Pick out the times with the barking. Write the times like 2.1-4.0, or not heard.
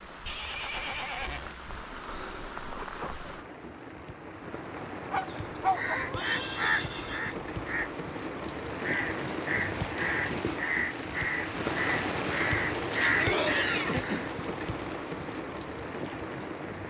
5.1-6.5.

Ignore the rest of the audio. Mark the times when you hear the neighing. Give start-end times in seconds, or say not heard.
0.2-1.6, 6.1-7.3, 13.1-14.2.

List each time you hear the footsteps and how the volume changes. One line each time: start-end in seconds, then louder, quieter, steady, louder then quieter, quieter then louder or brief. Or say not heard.
not heard.